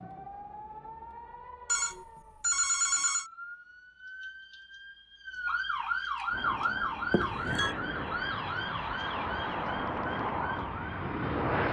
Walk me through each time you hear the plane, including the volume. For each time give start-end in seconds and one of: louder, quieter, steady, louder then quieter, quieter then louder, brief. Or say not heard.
6.2-11.6 louder.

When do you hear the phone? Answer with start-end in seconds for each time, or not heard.
1.6-3.2, 7.1-7.8.